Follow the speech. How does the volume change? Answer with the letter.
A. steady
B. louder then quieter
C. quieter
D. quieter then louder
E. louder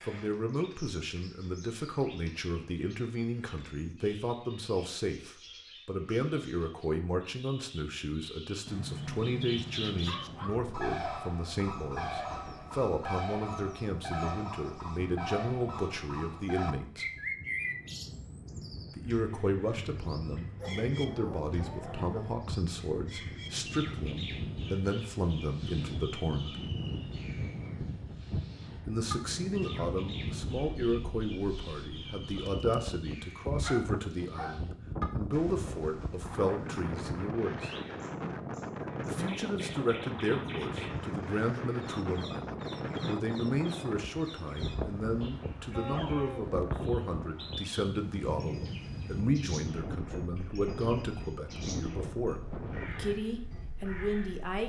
A.